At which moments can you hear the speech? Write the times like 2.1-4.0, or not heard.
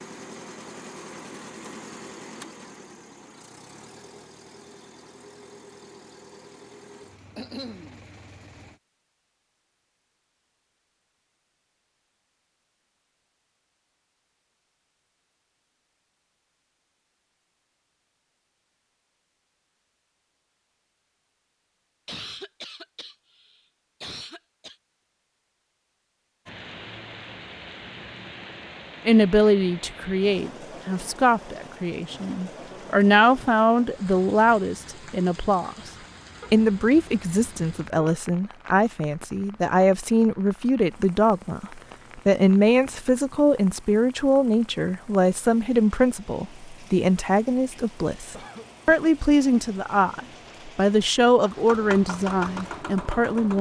29.1-35.9, 36.5-53.5.